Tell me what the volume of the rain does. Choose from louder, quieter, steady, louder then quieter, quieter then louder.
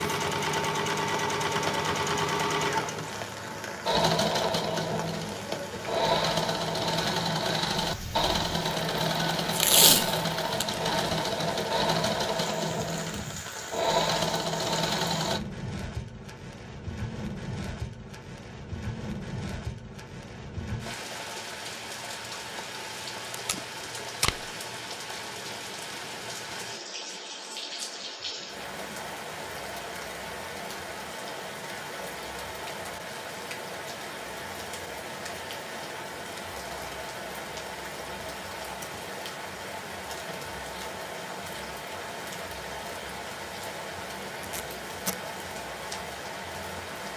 steady.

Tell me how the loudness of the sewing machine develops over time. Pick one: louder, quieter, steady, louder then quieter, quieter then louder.
steady.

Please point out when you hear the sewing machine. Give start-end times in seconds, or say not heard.
0.0-15.4.